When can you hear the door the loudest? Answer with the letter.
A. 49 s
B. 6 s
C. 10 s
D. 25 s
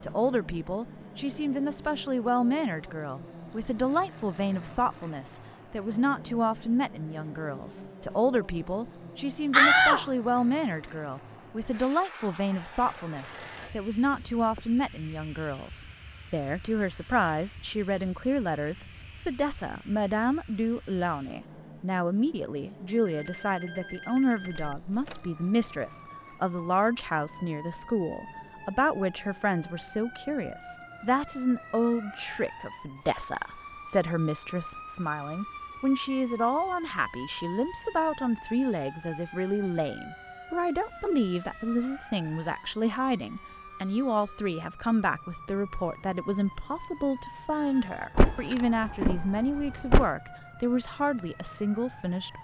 C.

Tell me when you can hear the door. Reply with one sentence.
You can hear the door from 9.5 to 10.1 s, from 24.4 to 25.2 s and from 48.1 to 50.1 s.